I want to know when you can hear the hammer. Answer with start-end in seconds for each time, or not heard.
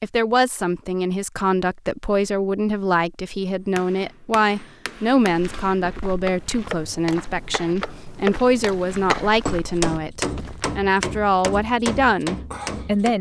3.6-13.1.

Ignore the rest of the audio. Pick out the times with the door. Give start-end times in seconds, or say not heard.
not heard.